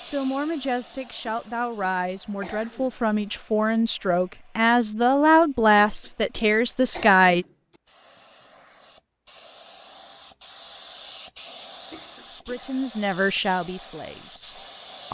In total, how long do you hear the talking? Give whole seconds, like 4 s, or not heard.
10 s.